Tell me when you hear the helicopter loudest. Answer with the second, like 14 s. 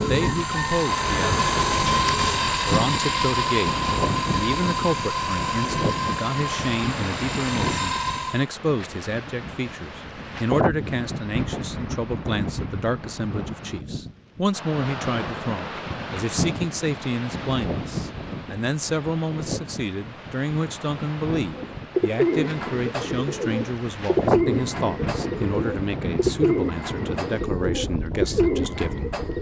2 s.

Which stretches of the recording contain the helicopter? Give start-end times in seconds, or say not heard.
0.0-8.4.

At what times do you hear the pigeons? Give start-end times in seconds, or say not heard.
0.0-2.5, 21.5-29.3.